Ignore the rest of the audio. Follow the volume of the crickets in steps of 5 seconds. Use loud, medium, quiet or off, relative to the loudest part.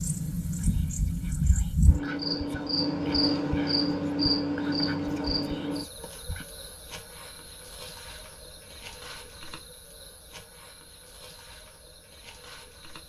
loud, medium, quiet.